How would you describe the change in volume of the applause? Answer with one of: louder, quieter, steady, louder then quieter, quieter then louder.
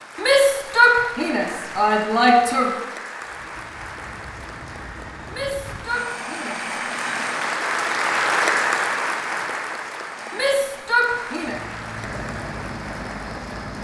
louder then quieter.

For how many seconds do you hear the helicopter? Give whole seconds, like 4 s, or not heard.
8 s.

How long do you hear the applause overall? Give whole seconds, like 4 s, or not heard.
14 s.